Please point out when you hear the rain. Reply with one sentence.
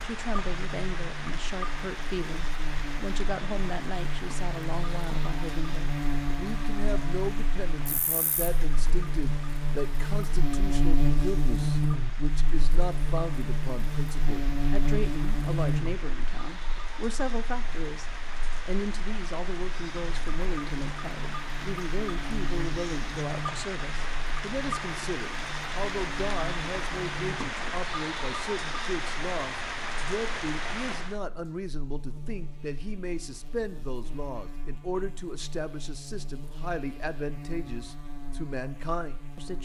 The rain can be heard from 0.0 to 31.2 s.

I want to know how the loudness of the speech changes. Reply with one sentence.
The volume of the speech stays about the same.